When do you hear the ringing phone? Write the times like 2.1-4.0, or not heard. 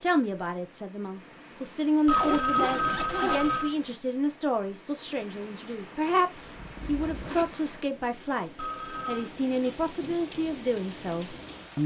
2.0-3.8, 8.6-9.3.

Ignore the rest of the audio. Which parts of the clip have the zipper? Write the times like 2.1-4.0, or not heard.
2.1-3.4, 6.4-7.5.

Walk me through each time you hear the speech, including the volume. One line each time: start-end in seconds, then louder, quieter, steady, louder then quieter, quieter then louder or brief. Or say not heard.
0.0-11.8 steady.